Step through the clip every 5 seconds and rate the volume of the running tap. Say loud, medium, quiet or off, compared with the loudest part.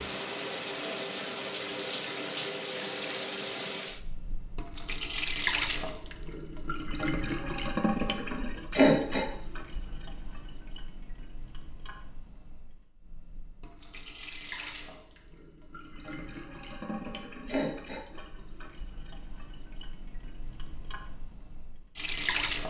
loud, loud, quiet, quiet, loud.